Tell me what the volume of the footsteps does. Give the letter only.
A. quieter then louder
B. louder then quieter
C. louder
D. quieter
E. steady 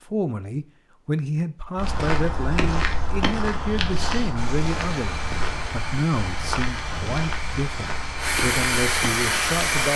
D.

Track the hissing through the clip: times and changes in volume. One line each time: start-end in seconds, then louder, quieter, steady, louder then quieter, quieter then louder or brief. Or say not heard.
4.3-9.9 louder.